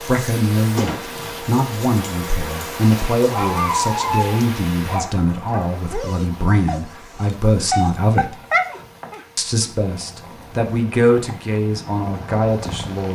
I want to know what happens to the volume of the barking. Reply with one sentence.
The volume of the barking goes down, then up.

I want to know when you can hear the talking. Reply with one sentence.
You can hear the talking from 0.0 to 8.4 s and from 9.3 to 13.1 s.